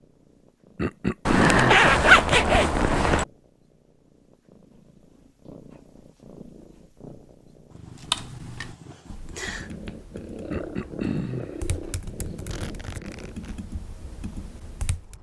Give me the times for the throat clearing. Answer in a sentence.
The throat clearing can be heard from 0.8 to 1.8 s and from 10.5 to 11.6 s.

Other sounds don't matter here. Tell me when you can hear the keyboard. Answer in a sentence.
You can hear the keyboard from 8.0 to 15.1 s.